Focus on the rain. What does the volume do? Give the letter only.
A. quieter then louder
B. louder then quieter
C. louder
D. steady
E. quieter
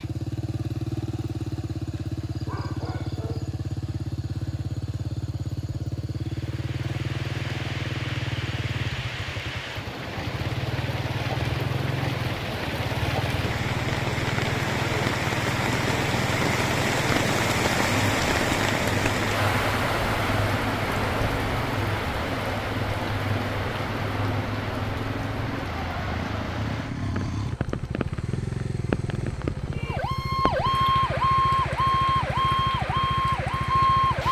B.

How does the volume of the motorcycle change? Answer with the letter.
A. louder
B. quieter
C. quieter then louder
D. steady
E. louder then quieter
D.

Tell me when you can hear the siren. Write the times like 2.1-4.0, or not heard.
29.8-34.2.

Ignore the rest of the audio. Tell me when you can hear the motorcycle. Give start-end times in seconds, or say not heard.
0.0-34.2.